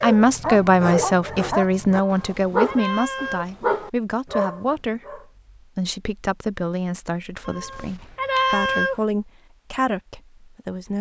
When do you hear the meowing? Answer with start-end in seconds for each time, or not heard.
2.0-3.5, 7.5-8.9.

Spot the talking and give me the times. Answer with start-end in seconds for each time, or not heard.
0.0-10.9.